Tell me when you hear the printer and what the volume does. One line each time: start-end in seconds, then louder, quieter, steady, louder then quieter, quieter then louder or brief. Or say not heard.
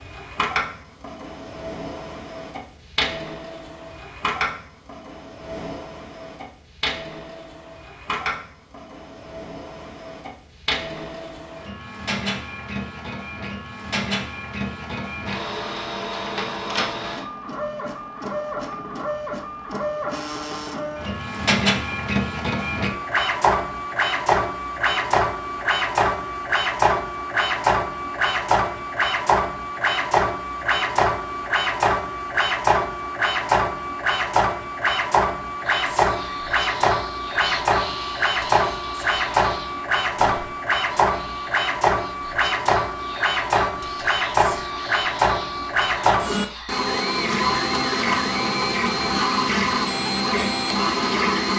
0.0-51.5 louder.